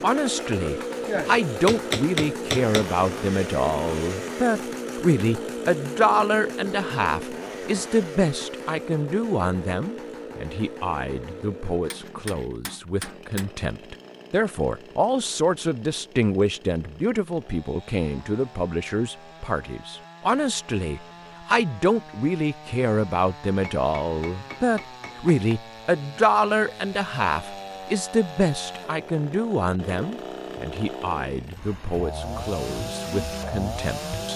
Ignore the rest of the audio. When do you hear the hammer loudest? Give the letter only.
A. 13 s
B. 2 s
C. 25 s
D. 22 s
B.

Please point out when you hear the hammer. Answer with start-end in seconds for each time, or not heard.
1.1-2.9, 11.9-13.5, 23.6-25.6.